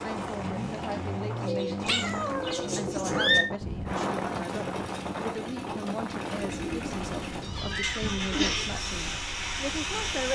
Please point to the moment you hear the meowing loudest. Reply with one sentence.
The loudest moment of the meowing is at 3 seconds.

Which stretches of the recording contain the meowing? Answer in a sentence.
You can hear the meowing from 1.9 to 3.5 s and from 7.4 to 8.8 s.